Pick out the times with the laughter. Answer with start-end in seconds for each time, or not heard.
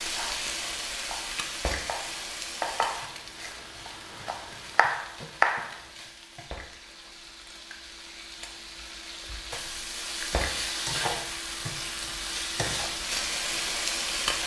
not heard.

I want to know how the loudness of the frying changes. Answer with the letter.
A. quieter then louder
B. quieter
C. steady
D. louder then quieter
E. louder
A.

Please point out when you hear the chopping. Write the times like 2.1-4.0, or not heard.
0.1-5.8.